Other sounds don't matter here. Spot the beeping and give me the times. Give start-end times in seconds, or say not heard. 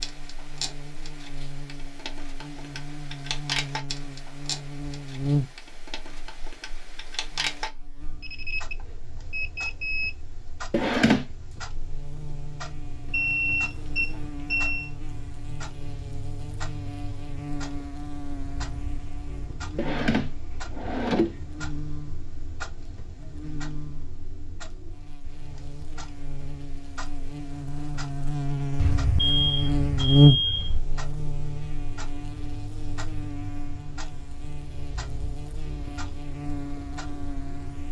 8.2-10.1, 13.1-14.9, 28.8-30.8.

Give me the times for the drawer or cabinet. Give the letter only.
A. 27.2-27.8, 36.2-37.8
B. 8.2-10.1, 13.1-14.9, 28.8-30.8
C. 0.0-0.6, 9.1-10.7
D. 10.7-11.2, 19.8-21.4
D.